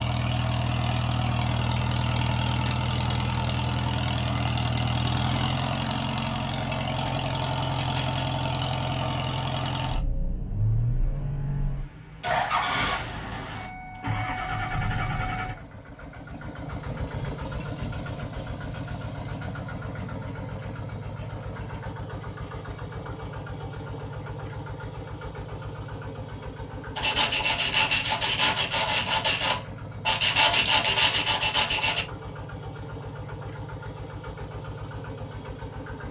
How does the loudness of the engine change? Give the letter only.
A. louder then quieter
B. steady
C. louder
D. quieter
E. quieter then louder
D.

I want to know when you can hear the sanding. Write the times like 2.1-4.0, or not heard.
26.9-32.0.